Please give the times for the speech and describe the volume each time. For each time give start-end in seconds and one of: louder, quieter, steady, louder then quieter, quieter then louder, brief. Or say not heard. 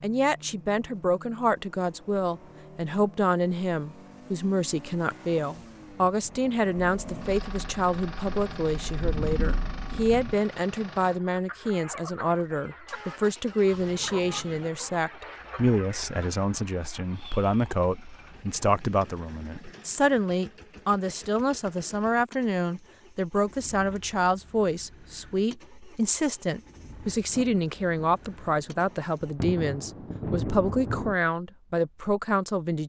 0.0-32.8 steady.